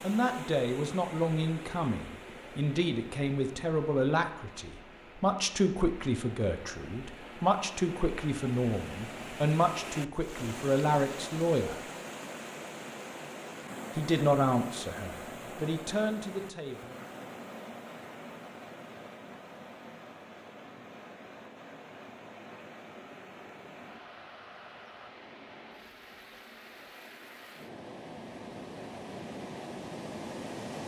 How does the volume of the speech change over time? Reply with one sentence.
The loudness of the speech stays about the same.